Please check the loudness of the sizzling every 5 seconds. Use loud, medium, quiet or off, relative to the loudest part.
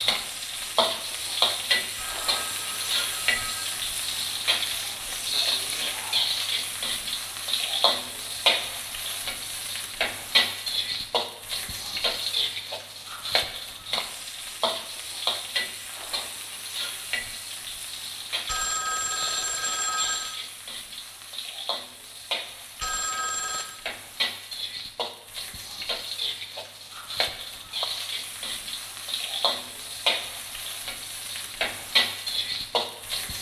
loud, loud, loud, medium, medium, medium, loud.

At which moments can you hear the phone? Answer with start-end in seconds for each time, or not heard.
1.9-3.8, 18.4-20.4, 22.8-23.6.